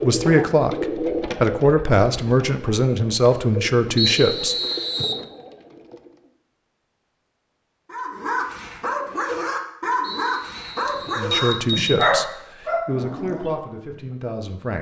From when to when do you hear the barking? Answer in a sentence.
You can hear the barking from 7.9 to 14.0 s.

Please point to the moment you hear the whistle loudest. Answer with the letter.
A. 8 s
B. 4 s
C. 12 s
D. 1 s
B.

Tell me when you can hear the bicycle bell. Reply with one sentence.
You can hear the bicycle bell from 10.8 to 12.2 s.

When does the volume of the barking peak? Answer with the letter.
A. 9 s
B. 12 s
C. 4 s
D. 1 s
B.